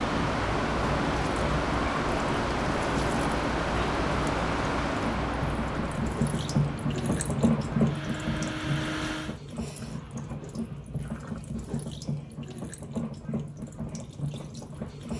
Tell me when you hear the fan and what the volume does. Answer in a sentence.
The fan can be heard from 0.0 to 9.4 s, getting quieter.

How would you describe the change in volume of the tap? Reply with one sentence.
The loudness of the tap goes up, then down.